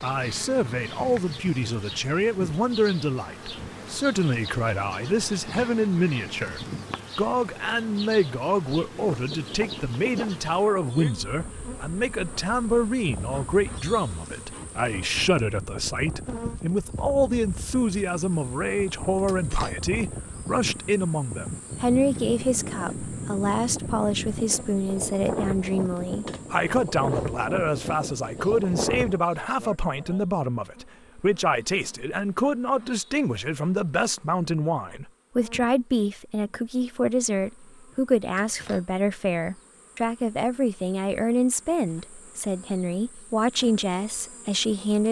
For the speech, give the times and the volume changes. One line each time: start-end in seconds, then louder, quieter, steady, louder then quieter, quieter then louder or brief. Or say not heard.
0.0-45.0 steady.